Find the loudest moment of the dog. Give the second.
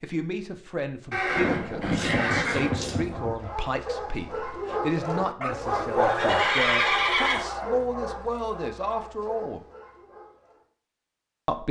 6 s.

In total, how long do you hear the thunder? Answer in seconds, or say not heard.
2 s.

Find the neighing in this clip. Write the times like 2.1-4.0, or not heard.
1.1-3.0, 6.0-7.5.